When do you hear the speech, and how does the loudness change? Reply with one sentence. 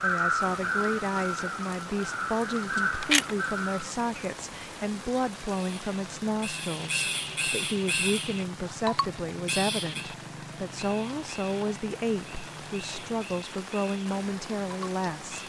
You can hear the speech from 0.0 to 15.4 s, at a steady volume.